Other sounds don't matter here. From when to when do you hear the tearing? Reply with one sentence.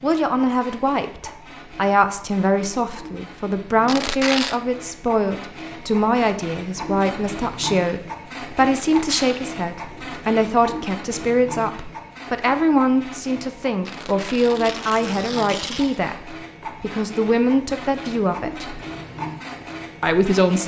You can hear the tearing from 3.9 to 4.5 s, from 8.8 to 9.3 s and from 13.8 to 16.0 s.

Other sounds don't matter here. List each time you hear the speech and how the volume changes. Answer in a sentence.
You can hear the speech from 0.0 to 18.7 s, at a steady volume; and briefly from 20.0 to 20.6 s.